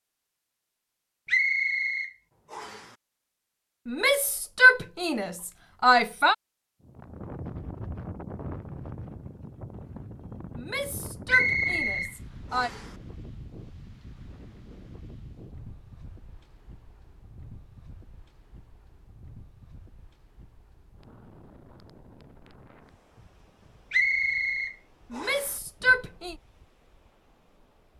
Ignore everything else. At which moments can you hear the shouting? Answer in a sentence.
You can hear the shouting from 3.9 to 6.3 s, from 10.6 to 12.7 s and from 25.1 to 26.4 s.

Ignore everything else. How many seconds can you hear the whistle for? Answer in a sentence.
You can hear the whistle for 5 seconds altogether.